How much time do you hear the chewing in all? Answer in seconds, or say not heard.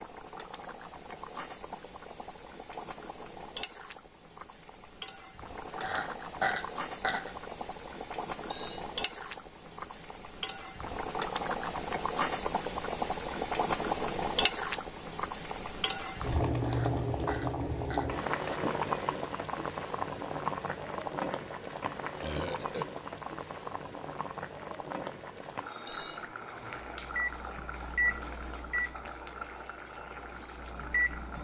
not heard.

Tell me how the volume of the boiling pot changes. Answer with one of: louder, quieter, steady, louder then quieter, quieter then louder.
louder then quieter.